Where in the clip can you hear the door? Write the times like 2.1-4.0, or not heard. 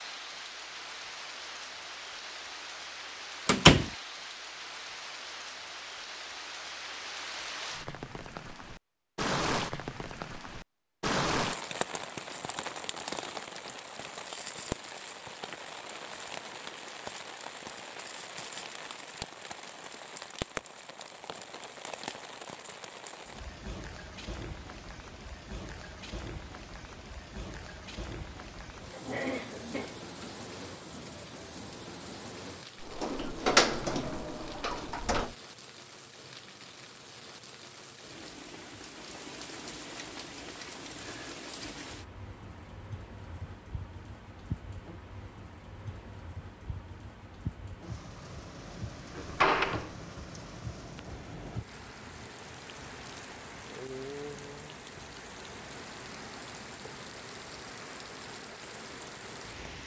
3.5-3.9, 32.8-35.3, 49.1-49.9.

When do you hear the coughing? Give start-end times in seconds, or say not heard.
28.9-30.3.